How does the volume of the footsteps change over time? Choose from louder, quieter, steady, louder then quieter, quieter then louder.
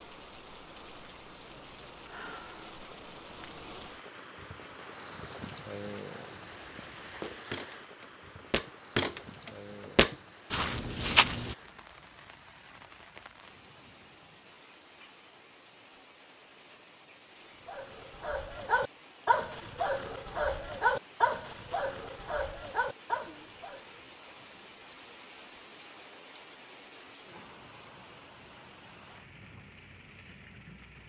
louder then quieter.